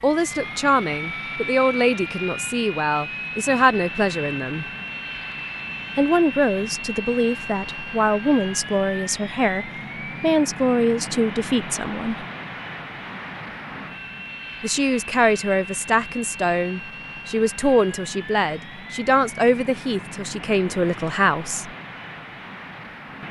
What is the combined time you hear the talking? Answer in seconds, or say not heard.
18 s.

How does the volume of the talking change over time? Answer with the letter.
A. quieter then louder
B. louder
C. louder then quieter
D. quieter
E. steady
E.